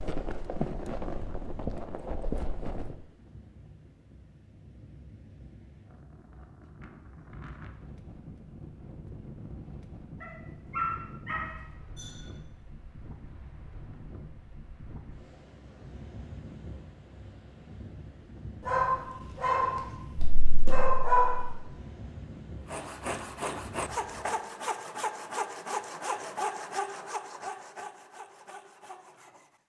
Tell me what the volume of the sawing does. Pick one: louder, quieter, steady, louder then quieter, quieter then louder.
quieter.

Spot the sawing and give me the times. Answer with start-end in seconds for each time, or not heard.
22.6-29.6.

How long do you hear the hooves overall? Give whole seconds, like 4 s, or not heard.
3 s.